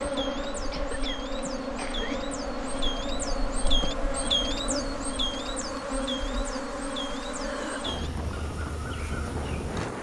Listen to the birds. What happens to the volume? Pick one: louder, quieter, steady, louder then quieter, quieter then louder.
louder then quieter.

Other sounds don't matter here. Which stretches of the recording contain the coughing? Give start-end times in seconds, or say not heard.
0.7-2.3, 7.3-8.2.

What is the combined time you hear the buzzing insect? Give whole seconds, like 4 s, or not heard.
10 s.